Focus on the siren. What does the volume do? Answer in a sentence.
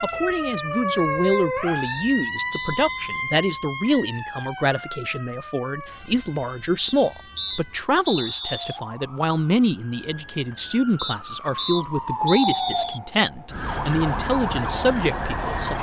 The loudness of the siren goes down, then up.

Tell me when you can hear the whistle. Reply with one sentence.
The whistle can be heard from 1.2 to 3.2 s, from 6.8 to 8.8 s and from 10.9 to 13.0 s.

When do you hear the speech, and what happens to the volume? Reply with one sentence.
You can hear the speech from 0.0 to 15.7 s, at a steady volume.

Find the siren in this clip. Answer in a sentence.
You can hear the siren from 0.0 to 15.7 s.